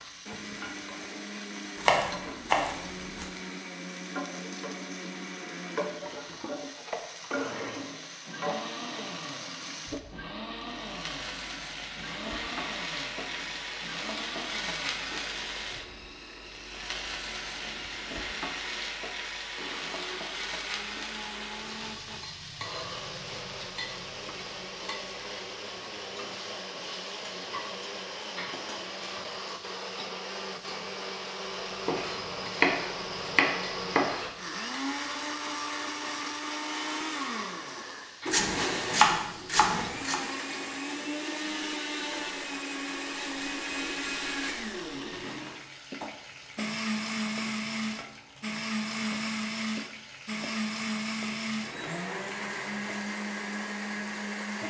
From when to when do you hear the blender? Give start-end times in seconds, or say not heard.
0.2-54.6.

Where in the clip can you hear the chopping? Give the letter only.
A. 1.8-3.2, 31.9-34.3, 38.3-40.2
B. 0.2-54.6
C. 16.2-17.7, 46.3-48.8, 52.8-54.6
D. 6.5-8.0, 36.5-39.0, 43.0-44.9
A.